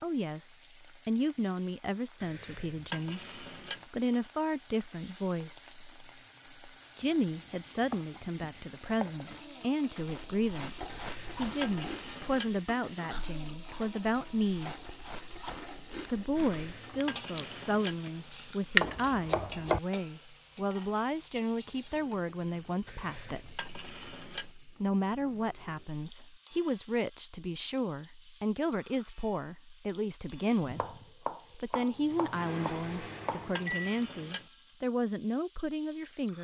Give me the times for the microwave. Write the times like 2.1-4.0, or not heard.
31.9-33.9.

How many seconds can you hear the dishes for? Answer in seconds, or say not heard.
8 s.